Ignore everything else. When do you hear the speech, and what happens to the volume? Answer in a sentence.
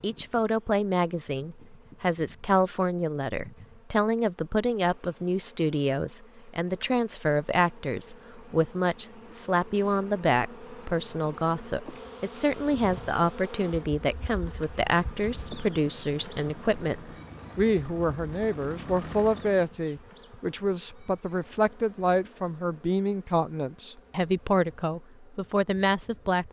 You can hear the speech from 0.0 to 26.4 s, at a steady volume.